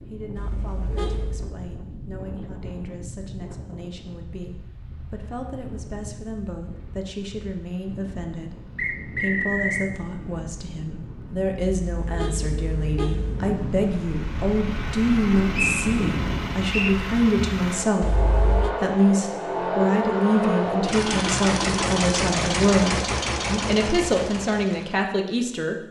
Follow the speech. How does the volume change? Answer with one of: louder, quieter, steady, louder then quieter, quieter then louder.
louder.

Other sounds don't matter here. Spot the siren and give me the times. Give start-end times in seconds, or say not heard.
not heard.